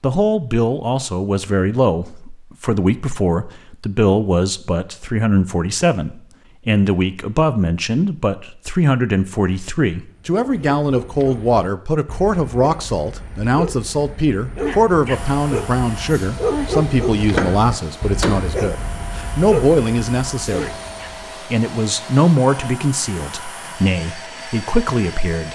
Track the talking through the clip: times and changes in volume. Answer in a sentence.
You can hear the talking from 0.0 to 20.8 s, at a steady volume; and from 21.4 to 25.4 s, getting quieter then louder.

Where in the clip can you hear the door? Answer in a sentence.
The door can be heard from 17.1 to 18.6 s.